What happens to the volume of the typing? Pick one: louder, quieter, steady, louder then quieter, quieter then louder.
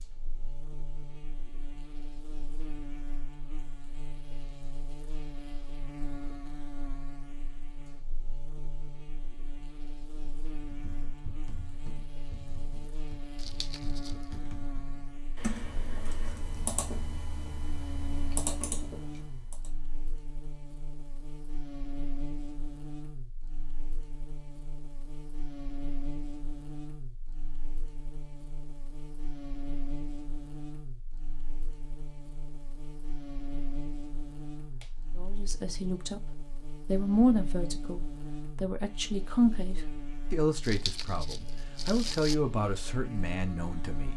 louder.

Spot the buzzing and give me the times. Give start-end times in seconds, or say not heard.
0.0-44.1.